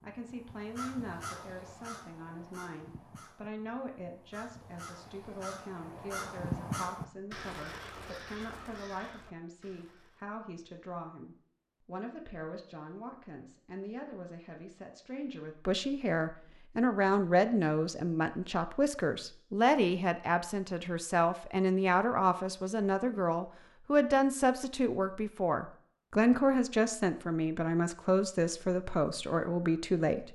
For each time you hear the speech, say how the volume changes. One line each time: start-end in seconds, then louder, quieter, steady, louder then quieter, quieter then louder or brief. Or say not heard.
0.0-30.3 louder.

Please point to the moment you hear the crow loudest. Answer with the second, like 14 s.
7 s.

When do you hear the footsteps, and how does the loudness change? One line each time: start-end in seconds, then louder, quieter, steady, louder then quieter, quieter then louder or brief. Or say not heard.
not heard.